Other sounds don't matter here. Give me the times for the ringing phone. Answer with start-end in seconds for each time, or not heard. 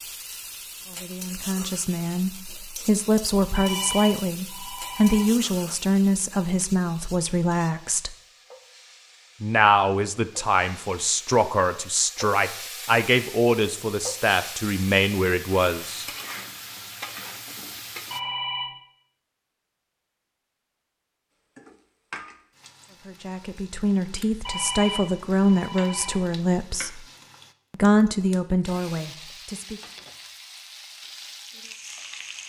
3.5-5.2, 18.1-18.8, 24.4-26.1.